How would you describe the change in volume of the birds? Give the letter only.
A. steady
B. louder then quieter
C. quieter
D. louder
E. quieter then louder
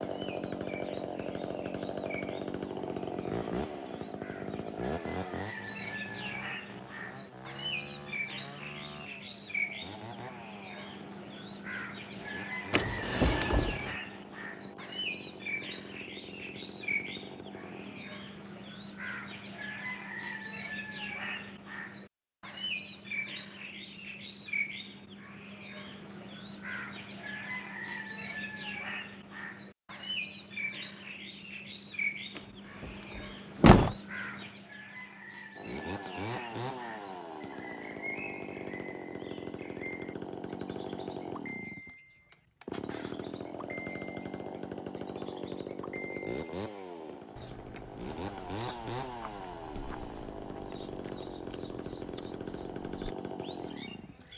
C.